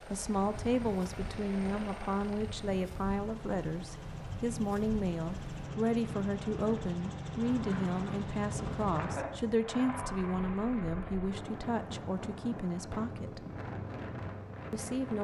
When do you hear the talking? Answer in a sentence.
The talking can be heard from 0.1 to 13.4 s and from 14.7 to 15.1 s.